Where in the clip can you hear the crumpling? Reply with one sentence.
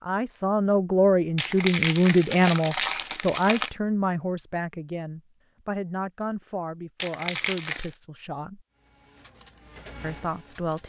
You can hear the crumpling from 1.4 to 3.7 s and from 7.0 to 8.0 s.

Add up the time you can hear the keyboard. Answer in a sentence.
The keyboard can't be heard in this clip.